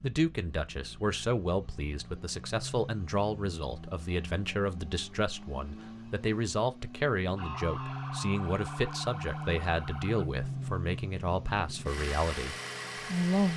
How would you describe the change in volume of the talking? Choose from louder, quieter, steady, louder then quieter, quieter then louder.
steady.